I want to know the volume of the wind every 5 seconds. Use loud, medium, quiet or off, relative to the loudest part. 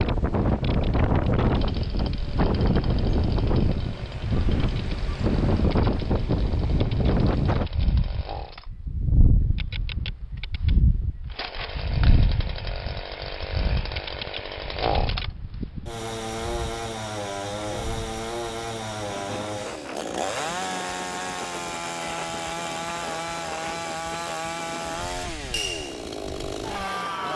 loud, loud, medium, quiet, quiet, quiet.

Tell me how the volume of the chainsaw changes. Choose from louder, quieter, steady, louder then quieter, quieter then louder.
louder.